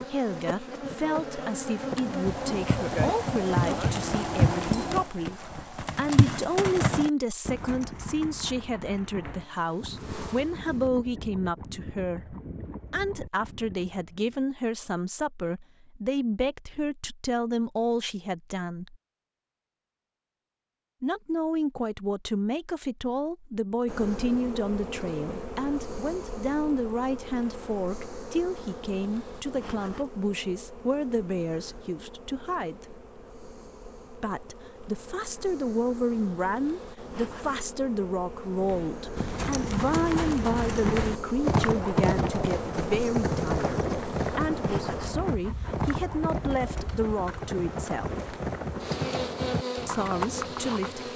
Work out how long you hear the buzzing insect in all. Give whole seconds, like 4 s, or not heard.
34 s.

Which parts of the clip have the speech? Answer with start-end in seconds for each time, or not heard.
0.0-18.9, 21.0-33.0, 34.1-48.1, 49.9-51.1.